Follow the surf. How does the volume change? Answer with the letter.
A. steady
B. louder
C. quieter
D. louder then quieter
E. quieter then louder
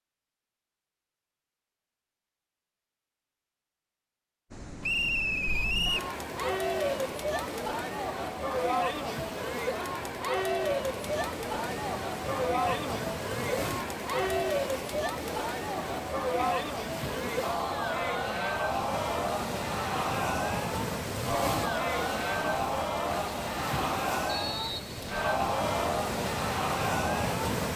B.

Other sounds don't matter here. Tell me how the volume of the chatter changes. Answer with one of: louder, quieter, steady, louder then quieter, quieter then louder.
steady.